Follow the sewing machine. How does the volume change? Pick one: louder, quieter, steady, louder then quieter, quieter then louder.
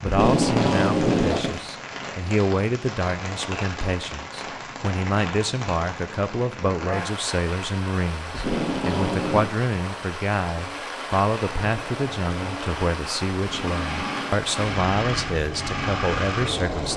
louder.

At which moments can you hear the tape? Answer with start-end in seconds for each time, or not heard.
0.1-1.6, 8.3-9.5, 13.4-14.3.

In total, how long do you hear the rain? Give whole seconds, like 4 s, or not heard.
17 s.